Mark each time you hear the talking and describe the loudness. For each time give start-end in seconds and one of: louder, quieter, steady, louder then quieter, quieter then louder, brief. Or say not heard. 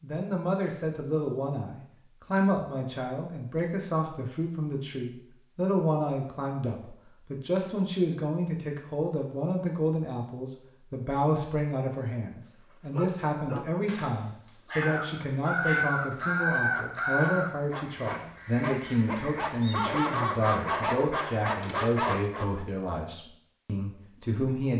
0.0-24.7 steady.